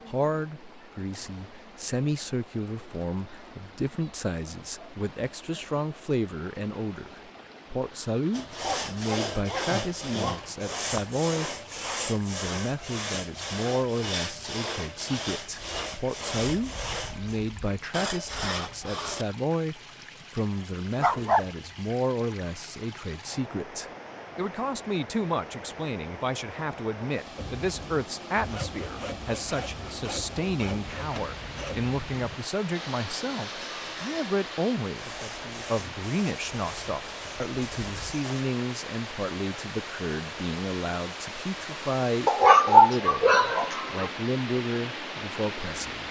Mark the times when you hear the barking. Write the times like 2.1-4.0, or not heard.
8.6-10.6, 21.0-21.4, 42.2-44.1.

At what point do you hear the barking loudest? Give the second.
43 s.